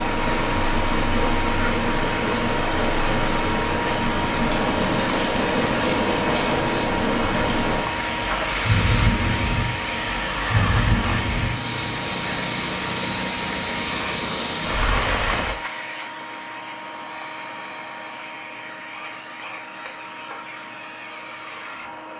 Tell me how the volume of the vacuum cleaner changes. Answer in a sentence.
The loudness of the vacuum cleaner goes down.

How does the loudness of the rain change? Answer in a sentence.
The volume of the rain stays about the same.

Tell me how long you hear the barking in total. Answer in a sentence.
The barking can't be heard in this clip.